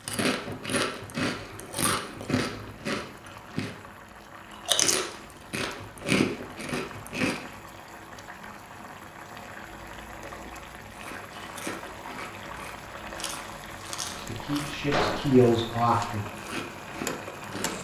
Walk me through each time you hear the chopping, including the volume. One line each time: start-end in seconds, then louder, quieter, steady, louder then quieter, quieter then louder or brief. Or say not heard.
not heard.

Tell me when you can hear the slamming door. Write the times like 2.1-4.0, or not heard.
14.9-15.4.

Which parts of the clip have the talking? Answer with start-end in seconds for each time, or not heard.
14.2-16.2.